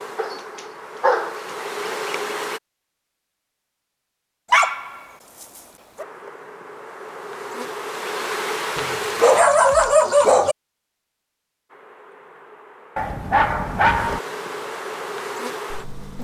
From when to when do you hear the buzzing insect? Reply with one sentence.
The buzzing insect can be heard from 0.0 to 2.6 s, from 6.0 to 9.4 s and from 11.7 to 16.2 s.